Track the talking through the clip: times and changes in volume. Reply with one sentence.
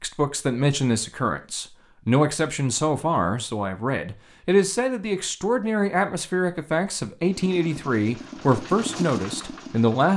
The talking can be heard from 0.0 to 10.1 s, at a steady volume.